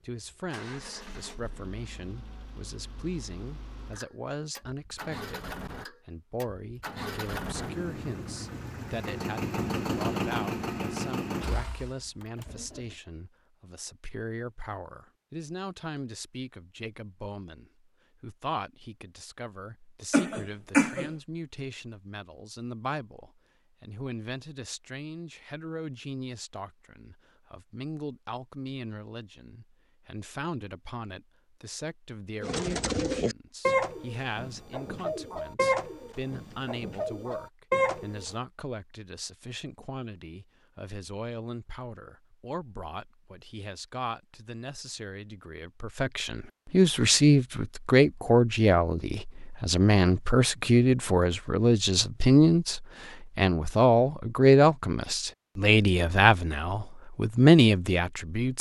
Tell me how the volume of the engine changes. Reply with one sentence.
The loudness of the engine goes up.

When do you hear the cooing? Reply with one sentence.
You can hear the cooing from 32.4 to 38.3 s.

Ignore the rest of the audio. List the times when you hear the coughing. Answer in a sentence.
The coughing can be heard from 20.1 to 21.1 s.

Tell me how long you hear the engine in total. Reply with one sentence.
You can hear the engine for 13 seconds altogether.